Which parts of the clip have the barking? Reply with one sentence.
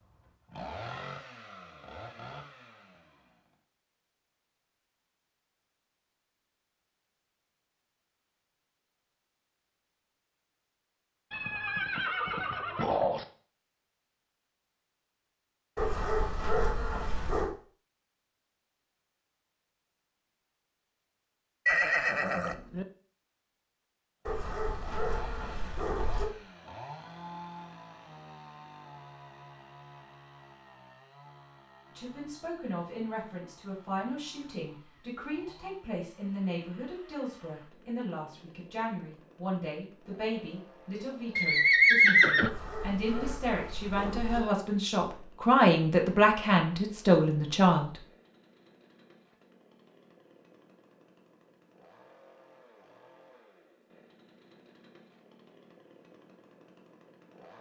The barking can be heard from 15.8 to 17.5 s, from 24.2 to 26.2 s and from 42.4 to 44.4 s.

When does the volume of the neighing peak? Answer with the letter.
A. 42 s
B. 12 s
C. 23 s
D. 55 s
A.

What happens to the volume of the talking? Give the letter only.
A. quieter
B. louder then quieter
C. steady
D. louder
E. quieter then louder
D.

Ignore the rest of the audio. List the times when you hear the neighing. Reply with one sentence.
The neighing can be heard from 11.3 to 13.2 s, from 21.6 to 22.9 s and from 41.4 to 42.5 s.